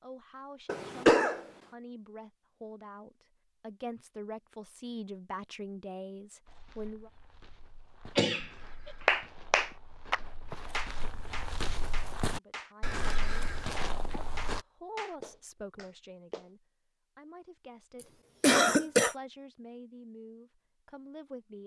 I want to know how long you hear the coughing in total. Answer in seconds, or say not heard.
3 s.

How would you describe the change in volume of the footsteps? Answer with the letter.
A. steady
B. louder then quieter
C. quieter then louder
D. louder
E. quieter
D.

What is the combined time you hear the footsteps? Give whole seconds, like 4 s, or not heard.
8 s.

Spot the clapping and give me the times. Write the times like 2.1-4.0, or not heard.
9.1-16.5.